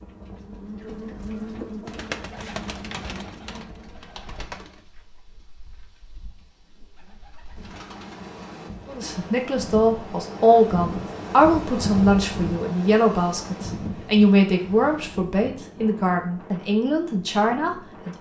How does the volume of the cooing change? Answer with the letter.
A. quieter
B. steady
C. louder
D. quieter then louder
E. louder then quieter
D.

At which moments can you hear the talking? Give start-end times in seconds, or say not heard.
8.8-18.1.